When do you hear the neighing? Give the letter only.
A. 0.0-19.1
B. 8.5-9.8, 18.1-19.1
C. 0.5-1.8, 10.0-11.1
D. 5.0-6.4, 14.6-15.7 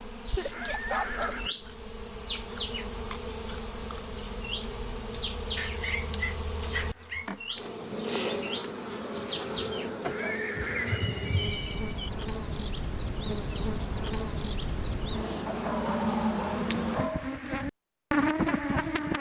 C.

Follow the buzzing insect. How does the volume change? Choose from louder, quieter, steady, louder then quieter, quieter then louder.
louder.